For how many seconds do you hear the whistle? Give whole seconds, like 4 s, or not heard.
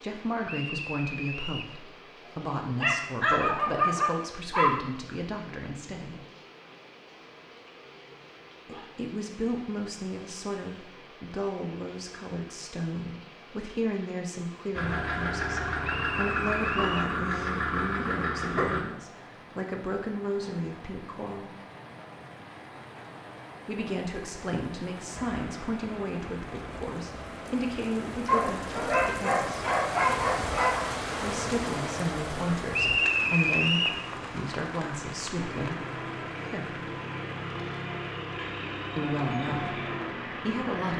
4 s.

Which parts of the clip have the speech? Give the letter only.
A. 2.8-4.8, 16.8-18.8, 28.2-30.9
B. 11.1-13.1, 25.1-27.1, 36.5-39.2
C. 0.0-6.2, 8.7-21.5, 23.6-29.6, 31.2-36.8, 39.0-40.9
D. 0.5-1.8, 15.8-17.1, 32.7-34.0
C.